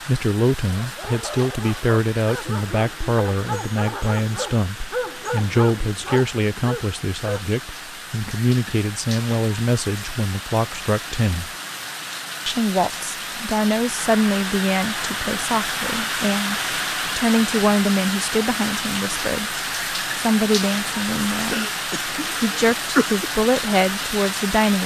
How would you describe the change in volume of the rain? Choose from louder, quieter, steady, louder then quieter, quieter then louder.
louder.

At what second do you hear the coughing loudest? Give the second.
23 s.